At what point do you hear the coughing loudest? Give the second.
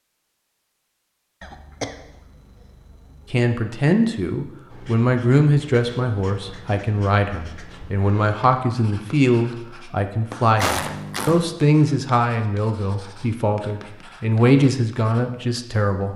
11 s.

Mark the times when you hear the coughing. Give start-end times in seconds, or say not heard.
1.4-3.4, 10.6-11.6.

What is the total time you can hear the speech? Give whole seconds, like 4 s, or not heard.
13 s.